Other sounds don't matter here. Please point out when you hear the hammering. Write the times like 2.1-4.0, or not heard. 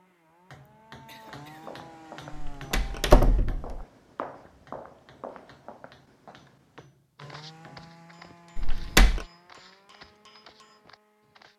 0.5-10.8.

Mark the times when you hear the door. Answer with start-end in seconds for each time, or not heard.
2.3-3.8, 8.6-9.2.